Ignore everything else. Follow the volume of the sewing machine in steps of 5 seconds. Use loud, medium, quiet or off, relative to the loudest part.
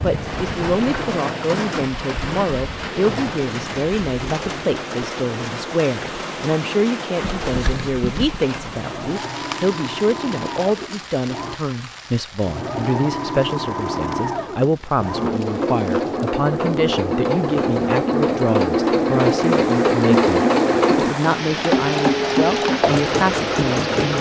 quiet, quiet, medium, loud, loud.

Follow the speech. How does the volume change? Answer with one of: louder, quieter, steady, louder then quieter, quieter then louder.
steady.